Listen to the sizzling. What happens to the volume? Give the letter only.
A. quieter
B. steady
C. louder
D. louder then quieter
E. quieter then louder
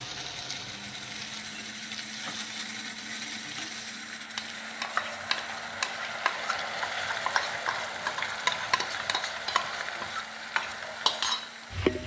C.